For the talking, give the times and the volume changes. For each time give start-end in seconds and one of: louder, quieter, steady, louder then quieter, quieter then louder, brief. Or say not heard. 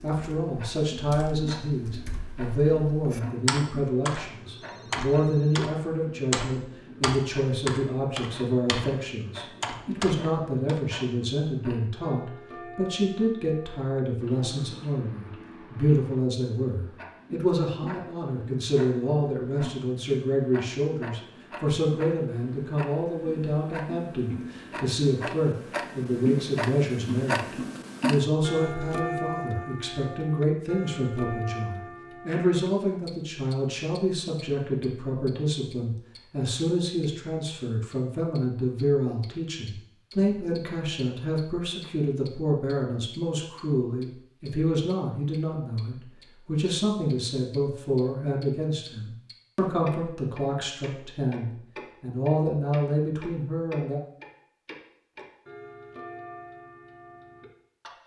0.0-54.0 steady.